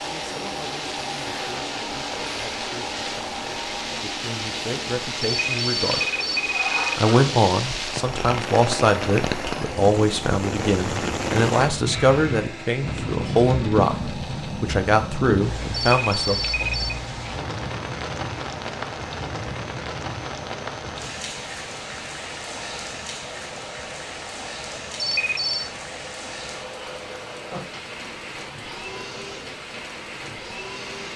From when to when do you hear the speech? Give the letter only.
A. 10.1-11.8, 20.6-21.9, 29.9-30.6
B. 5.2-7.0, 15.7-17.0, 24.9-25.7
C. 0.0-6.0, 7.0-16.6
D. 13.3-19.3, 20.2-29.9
C.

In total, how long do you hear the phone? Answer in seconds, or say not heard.
4 s.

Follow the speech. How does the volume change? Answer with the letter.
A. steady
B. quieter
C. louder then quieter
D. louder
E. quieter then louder
D.